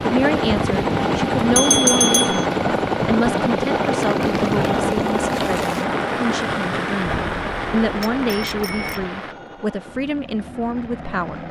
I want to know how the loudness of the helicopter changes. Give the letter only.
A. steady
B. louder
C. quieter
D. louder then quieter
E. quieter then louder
C.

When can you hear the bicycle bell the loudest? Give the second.
2 s.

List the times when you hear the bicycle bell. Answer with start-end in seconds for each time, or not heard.
1.6-2.5, 7.0-9.1.